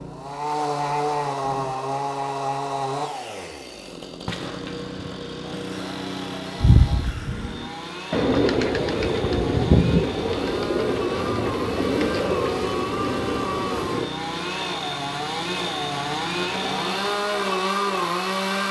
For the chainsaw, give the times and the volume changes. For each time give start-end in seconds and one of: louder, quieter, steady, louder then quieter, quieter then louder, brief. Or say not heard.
0.0-18.6 quieter then louder.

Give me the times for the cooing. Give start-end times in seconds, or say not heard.
6.6-14.1.